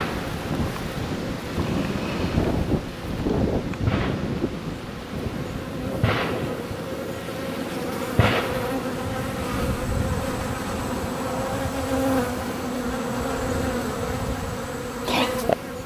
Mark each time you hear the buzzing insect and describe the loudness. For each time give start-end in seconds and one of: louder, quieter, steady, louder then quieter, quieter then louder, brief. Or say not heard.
0.0-15.8 louder.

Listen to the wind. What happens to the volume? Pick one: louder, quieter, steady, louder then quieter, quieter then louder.
quieter.